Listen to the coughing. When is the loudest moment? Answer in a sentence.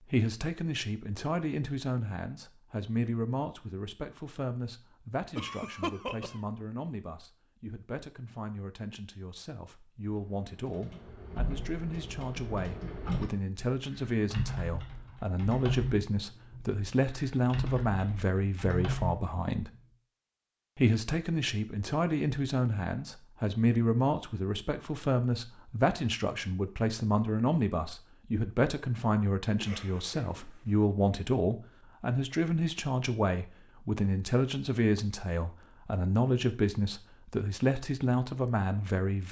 The volume of the coughing peaks at 6 seconds.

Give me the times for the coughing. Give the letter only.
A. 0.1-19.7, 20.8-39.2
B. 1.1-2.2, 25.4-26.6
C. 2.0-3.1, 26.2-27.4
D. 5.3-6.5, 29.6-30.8
D.